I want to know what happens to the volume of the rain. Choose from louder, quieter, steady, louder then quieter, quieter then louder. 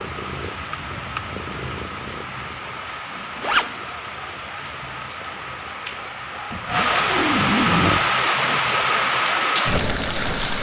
louder.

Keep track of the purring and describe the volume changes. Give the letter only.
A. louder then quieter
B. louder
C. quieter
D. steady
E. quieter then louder
C.